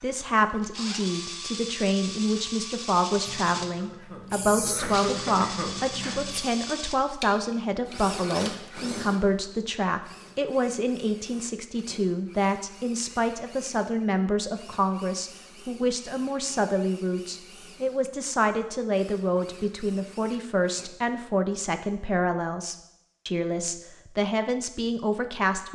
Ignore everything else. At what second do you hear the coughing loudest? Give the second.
5 s.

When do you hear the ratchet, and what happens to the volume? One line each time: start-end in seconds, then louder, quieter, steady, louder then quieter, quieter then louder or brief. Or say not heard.
not heard.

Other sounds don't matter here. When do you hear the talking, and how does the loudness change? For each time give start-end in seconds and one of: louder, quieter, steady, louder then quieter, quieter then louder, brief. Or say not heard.
0.0-25.7 steady.